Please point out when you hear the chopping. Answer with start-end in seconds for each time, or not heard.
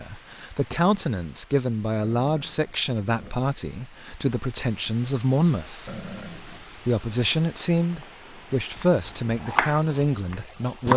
8.8-10.9.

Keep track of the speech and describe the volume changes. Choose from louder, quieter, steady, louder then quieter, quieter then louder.
steady.